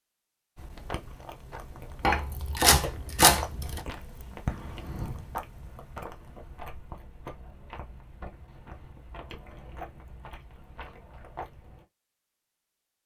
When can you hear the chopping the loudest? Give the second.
3 s.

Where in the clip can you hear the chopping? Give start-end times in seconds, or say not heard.
2.0-3.8.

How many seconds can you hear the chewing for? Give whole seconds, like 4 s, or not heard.
11 s.